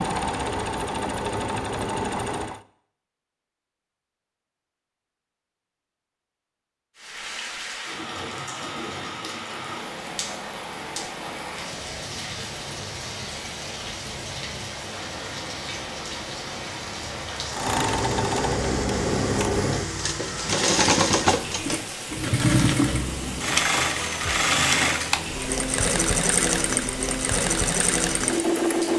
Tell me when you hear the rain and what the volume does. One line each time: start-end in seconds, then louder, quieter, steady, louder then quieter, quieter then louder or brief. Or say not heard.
7.0-28.9 steady.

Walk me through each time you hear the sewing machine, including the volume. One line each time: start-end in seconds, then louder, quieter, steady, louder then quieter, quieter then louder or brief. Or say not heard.
0.0-2.6 brief
17.5-28.9 steady.